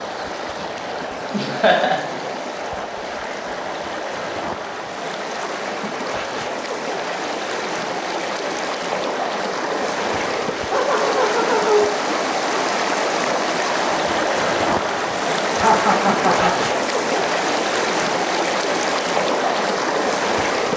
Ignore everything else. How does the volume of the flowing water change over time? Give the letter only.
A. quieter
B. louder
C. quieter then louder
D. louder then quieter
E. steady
B.